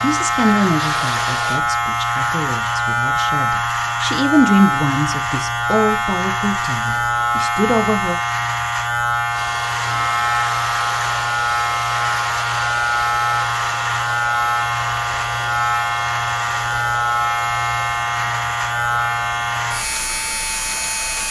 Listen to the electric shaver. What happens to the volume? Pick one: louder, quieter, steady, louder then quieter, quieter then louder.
steady.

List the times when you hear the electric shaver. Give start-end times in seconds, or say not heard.
0.0-21.2.